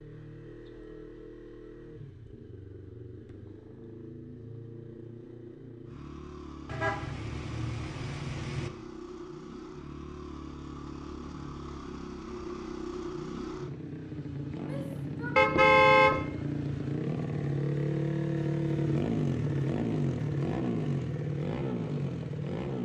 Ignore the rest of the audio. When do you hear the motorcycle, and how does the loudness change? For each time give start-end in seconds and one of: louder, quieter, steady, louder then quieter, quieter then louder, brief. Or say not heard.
0.0-22.8 louder.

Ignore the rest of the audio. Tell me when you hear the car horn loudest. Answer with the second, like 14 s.
16 s.